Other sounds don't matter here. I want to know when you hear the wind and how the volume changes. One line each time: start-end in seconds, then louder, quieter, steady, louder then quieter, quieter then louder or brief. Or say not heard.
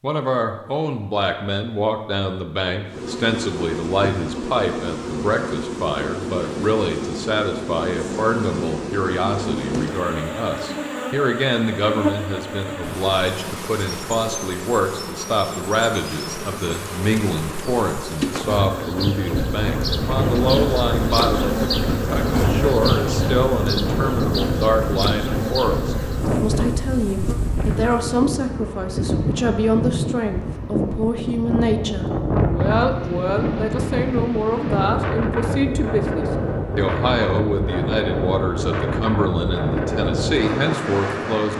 19.4-41.5 steady.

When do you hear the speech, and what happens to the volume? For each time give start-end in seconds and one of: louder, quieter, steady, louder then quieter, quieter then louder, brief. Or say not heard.
0.0-41.5 steady.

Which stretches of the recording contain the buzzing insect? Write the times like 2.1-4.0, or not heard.
2.9-28.1.